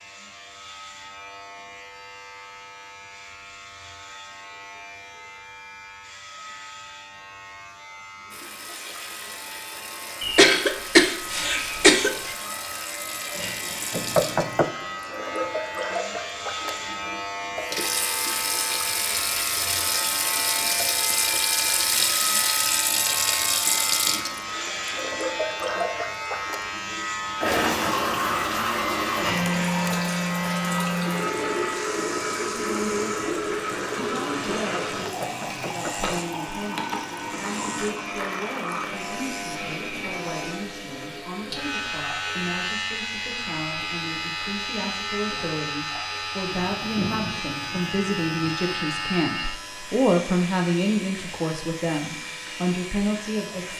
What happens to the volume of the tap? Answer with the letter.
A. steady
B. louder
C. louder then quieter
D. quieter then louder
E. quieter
C.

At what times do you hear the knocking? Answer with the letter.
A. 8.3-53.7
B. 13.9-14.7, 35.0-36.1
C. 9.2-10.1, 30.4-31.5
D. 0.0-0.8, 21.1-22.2
B.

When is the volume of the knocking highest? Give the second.
14 s.